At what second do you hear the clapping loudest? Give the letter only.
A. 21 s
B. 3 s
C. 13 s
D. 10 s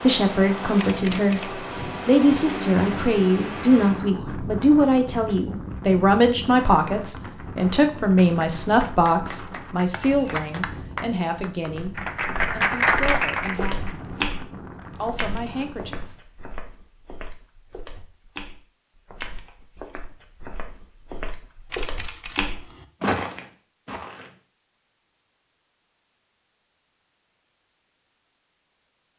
C.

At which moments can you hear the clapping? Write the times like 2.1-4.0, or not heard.
8.0-13.9.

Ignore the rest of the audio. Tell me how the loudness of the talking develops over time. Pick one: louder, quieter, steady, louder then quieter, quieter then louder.
quieter.